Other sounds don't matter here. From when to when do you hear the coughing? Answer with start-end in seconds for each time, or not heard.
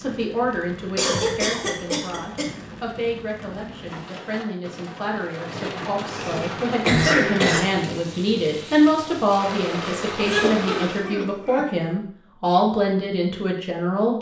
0.9-2.5, 6.1-7.6, 10.2-11.8.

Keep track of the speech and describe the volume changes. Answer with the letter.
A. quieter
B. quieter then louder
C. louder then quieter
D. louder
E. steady
D.